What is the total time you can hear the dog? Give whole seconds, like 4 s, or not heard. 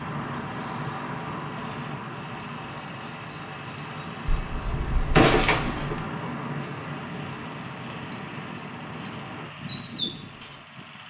not heard.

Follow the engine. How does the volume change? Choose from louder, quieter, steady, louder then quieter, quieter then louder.
steady.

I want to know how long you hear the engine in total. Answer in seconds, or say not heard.
11 s.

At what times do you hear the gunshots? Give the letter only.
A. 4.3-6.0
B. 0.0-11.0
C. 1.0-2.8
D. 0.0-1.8
A.